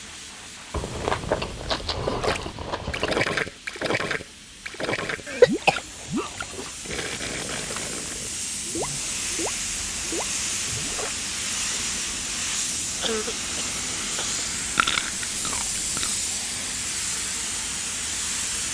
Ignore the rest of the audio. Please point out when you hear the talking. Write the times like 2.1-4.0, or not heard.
not heard.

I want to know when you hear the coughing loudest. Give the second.
6 s.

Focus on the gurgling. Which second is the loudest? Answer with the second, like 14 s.
3 s.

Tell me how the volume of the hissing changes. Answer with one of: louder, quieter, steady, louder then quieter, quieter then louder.
louder.